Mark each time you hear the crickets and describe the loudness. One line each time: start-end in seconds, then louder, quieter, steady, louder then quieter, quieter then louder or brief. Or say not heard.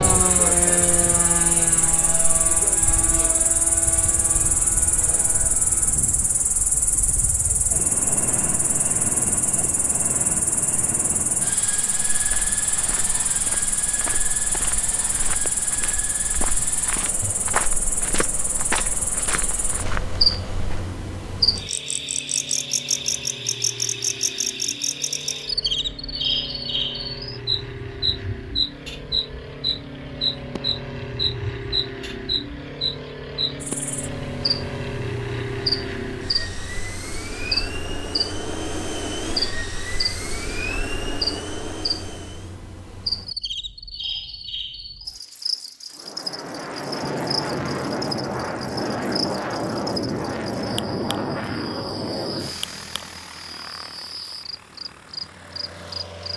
0.0-56.3 quieter.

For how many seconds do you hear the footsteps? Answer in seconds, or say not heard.
9 s.